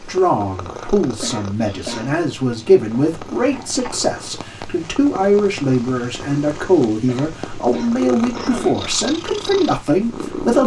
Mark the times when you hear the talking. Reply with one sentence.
The talking can be heard from 0.0 to 10.6 s.